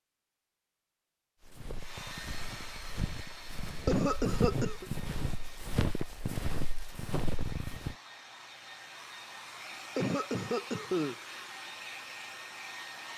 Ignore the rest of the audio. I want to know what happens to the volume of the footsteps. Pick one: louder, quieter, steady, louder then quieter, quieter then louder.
louder.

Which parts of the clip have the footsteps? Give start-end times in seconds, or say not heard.
1.4-8.0.